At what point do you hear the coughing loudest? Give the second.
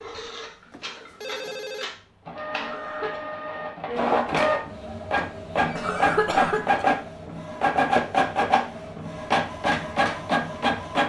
6 s.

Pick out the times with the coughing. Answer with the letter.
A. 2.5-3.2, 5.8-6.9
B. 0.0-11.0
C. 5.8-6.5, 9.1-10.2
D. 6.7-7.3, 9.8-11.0
A.